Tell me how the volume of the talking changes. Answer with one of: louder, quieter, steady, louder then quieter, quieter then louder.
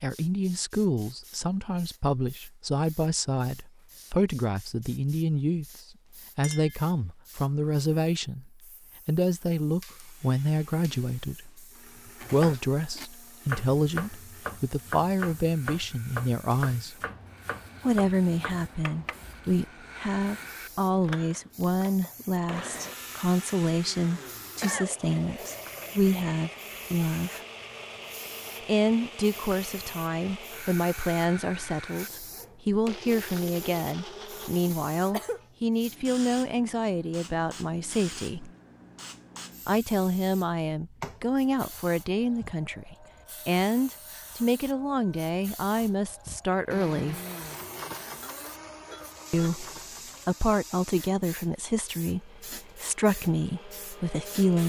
steady.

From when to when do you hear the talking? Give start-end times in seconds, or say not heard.
0.0-11.7, 12.3-16.9, 17.8-27.4, 28.6-38.5, 39.6-47.1, 49.3-54.6.